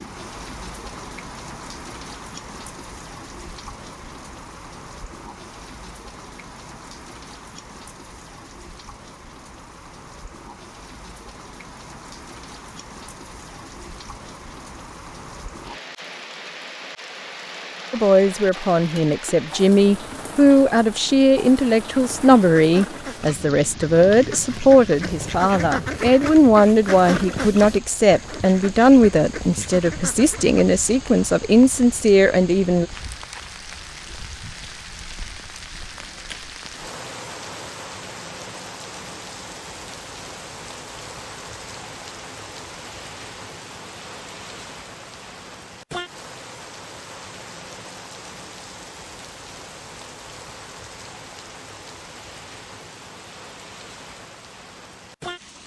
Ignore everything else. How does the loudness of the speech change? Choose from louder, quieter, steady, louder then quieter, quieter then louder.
steady.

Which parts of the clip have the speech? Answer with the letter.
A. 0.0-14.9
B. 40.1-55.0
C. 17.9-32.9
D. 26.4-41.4
C.